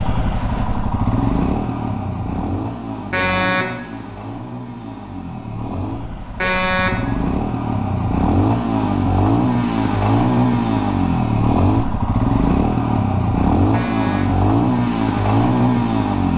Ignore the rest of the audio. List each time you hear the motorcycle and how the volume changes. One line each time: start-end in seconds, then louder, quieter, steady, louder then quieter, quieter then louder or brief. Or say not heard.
0.0-16.3 quieter then louder.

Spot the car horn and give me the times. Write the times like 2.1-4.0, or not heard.
3.1-3.8, 6.4-7.0, 13.7-14.3.